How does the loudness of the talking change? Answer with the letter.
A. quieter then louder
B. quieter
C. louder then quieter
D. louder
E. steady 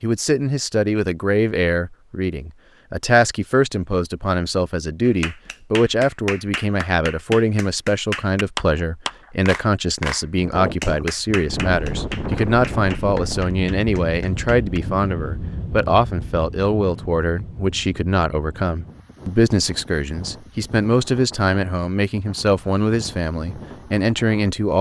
E.